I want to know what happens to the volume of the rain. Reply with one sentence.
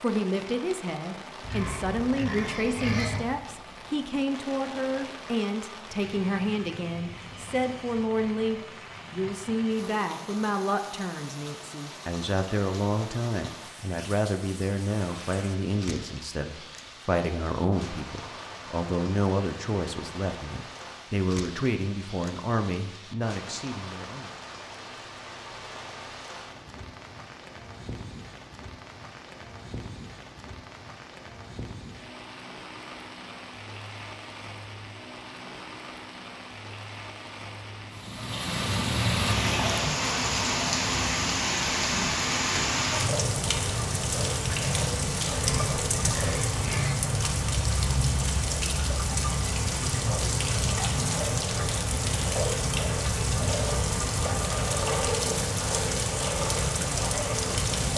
The loudness of the rain goes up.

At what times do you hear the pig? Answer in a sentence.
You can hear the pig from 1.4 to 3.4 s and from 45.3 to 47.0 s.